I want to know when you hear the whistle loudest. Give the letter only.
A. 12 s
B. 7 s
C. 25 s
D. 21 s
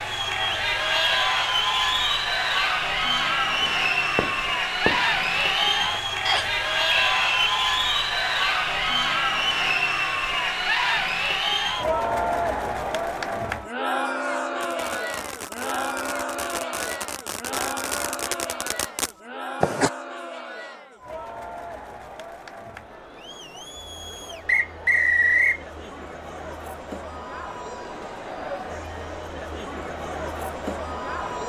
C.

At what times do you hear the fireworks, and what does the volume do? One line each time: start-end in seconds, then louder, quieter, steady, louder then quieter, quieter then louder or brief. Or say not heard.
3.4-5.3 brief
14.6-19.9 louder.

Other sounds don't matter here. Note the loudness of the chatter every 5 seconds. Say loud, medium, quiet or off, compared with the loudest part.
loud, loud, loud, medium, quiet, quiet, medium.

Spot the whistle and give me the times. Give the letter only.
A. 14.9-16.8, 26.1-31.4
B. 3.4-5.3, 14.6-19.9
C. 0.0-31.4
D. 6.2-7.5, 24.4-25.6
D.